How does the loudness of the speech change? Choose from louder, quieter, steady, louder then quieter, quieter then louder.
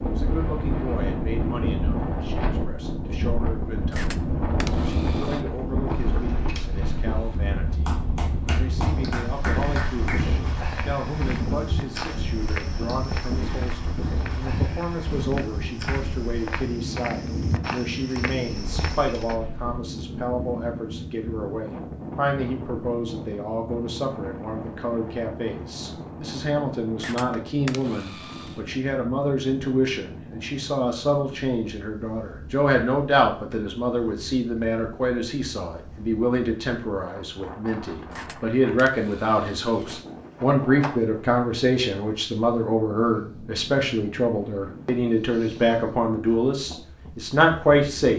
louder.